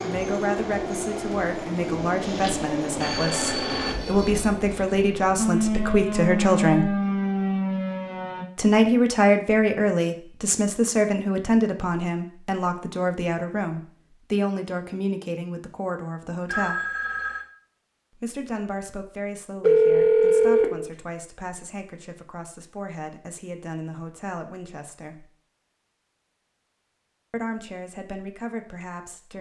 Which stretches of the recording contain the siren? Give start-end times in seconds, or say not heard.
5.3-8.4.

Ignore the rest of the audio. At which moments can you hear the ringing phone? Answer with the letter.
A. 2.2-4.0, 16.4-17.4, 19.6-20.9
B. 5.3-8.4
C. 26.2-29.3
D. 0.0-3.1
A.